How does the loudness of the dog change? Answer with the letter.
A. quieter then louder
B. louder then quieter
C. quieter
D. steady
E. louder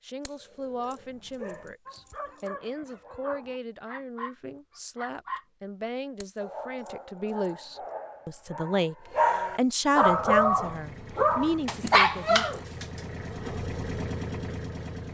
E.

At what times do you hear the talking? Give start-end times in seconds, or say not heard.
0.0-8.9, 9.6-12.4.